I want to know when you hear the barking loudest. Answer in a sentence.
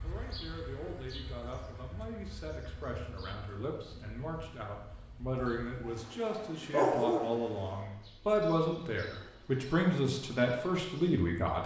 The loudest moment of the barking is at 7 seconds.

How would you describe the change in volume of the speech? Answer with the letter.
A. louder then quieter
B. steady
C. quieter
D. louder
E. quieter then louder
D.